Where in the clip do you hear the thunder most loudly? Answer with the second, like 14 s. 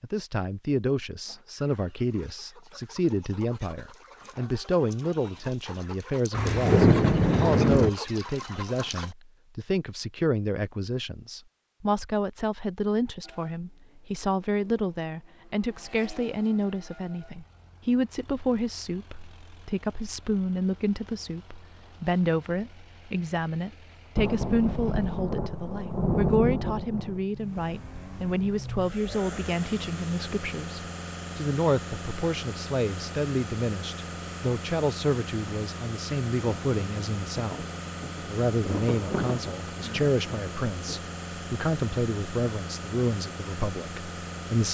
7 s.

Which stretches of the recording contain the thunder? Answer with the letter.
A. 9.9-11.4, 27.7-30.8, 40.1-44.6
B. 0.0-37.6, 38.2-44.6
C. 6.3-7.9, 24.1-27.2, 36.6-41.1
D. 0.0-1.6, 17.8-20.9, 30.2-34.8
C.